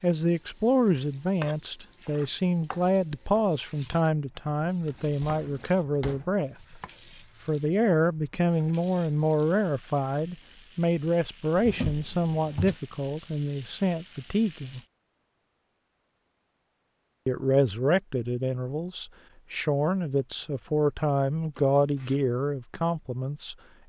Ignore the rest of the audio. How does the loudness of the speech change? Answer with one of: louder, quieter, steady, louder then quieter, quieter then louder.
steady.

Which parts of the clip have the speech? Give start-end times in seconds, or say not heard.
0.0-6.8, 7.5-14.8, 17.2-23.6.